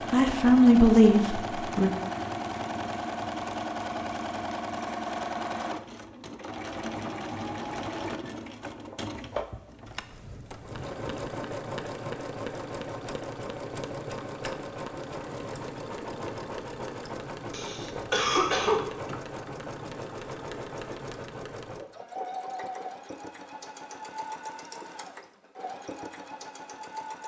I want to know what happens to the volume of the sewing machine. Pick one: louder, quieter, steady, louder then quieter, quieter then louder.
quieter.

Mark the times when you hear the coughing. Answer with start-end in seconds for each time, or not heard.
17.5-18.8.